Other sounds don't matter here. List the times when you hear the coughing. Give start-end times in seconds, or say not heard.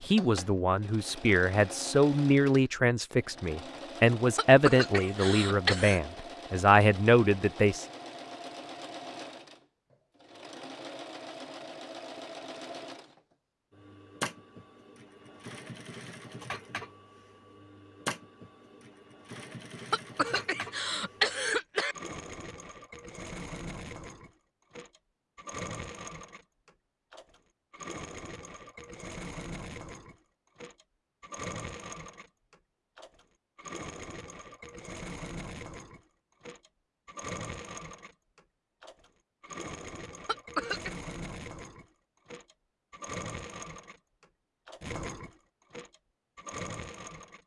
4.3-6.0, 19.9-21.9, 40.2-40.9.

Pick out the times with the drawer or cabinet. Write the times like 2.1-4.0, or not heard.
not heard.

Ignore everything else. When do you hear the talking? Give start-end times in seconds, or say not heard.
0.0-7.8.